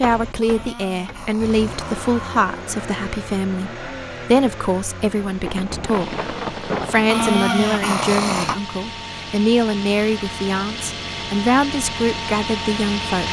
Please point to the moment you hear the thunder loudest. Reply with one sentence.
The loudest moment of the thunder is at 7 seconds.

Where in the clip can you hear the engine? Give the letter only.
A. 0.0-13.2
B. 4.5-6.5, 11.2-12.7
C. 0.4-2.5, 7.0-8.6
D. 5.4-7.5
A.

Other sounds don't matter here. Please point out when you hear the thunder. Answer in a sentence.
The thunder can be heard from 5.4 to 7.5 s.